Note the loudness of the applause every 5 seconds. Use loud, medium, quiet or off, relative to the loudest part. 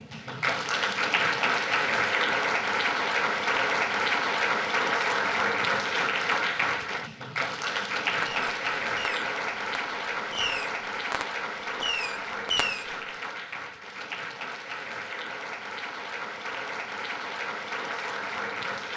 loud, loud, medium, medium.